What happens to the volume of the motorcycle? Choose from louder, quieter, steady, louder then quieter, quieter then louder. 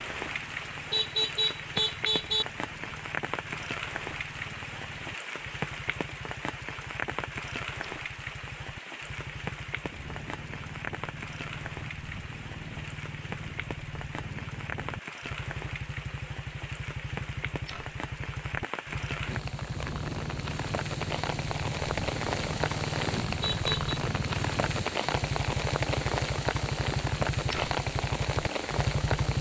louder.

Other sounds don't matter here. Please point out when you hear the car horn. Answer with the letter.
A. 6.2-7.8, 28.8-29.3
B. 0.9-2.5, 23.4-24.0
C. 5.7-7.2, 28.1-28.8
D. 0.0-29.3
B.